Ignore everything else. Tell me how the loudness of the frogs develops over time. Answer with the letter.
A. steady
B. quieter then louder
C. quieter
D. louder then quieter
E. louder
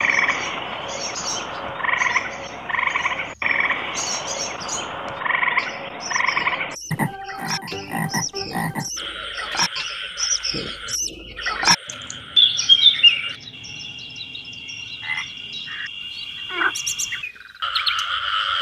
B.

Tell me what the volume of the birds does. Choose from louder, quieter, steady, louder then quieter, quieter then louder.
louder then quieter.